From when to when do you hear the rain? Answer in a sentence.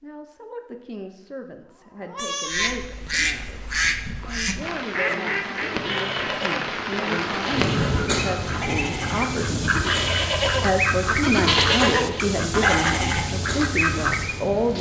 The rain can be heard from 4.6 to 14.7 s.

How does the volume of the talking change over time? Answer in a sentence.
The volume of the talking goes up.